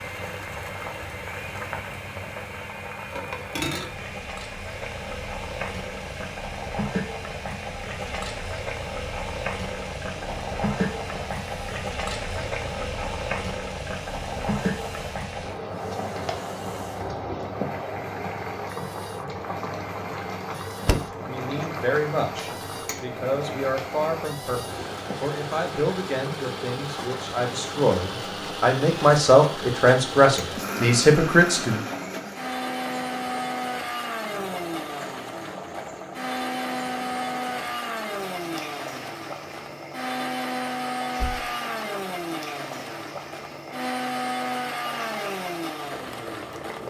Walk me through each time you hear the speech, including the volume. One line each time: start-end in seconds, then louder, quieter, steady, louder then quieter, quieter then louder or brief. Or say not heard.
21.2-31.8 louder.